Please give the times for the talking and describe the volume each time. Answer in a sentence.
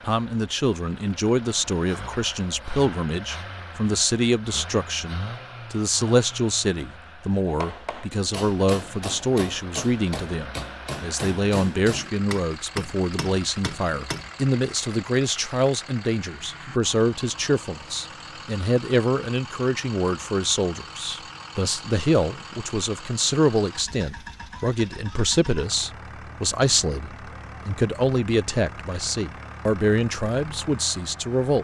The talking can be heard from 0.1 to 31.5 s, at a steady volume.